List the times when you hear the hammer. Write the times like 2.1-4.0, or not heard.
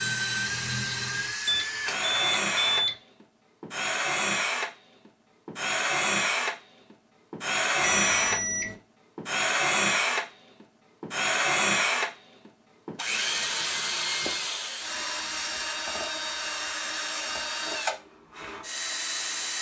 not heard.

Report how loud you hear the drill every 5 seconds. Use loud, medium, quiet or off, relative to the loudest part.
loud, loud, loud, medium.